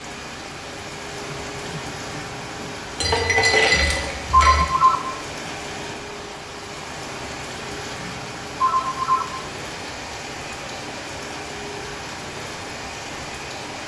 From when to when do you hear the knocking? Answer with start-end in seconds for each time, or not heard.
not heard.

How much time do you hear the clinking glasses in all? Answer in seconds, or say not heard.
2 s.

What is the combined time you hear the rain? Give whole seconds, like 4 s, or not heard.
14 s.